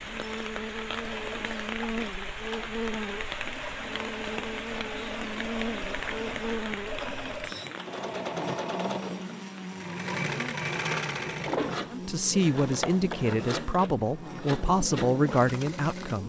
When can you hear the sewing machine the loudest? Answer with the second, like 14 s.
11 s.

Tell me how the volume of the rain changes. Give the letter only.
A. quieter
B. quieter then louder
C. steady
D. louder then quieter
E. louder
A.